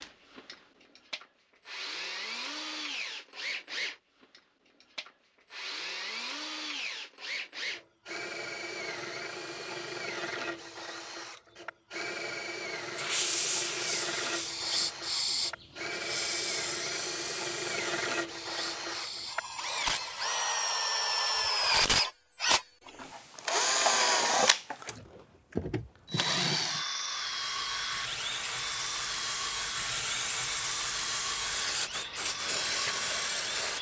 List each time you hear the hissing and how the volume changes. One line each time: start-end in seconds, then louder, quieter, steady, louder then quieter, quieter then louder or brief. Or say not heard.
12.8-20.8 quieter
27.0-33.7 louder.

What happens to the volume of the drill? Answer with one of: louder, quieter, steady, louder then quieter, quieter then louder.
louder then quieter.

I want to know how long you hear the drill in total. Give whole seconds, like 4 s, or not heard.
34 s.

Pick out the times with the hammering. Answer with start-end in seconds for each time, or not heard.
not heard.